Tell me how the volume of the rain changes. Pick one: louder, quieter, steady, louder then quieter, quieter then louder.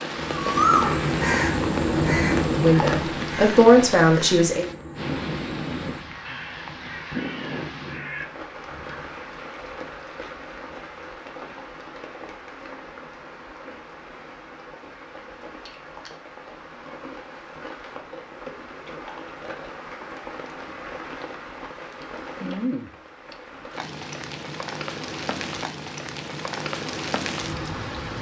quieter then louder.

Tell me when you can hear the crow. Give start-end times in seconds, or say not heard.
0.1-9.1.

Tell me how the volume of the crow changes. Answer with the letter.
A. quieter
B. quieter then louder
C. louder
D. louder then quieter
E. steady
A.